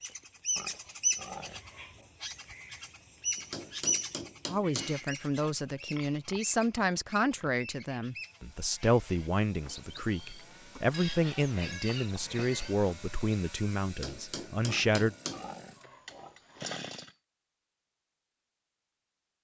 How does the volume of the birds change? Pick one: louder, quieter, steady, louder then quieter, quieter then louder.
quieter.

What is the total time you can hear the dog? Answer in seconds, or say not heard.
not heard.